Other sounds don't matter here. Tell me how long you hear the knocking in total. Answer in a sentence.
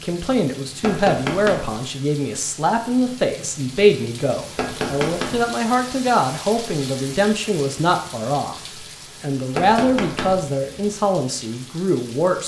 You can hear the knocking for 3 seconds altogether.